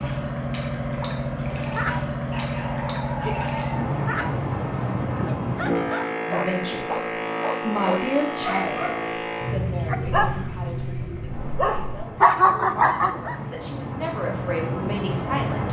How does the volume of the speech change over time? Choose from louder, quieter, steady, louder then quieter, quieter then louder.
quieter then louder.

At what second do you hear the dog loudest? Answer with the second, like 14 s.
12 s.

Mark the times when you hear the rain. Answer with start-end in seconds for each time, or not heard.
not heard.